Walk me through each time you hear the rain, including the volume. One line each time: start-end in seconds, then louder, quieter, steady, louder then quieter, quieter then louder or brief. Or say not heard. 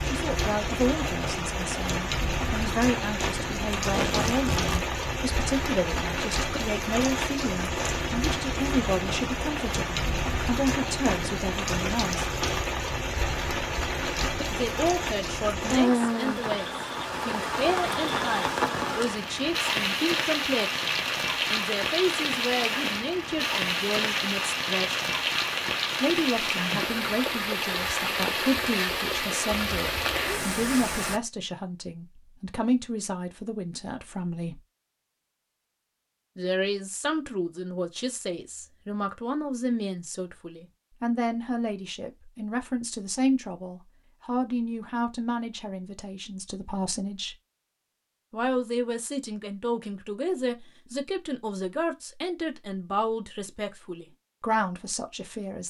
0.0-31.2 steady.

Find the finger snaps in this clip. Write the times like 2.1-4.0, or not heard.
not heard.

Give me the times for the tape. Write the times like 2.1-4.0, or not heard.
3.8-4.8.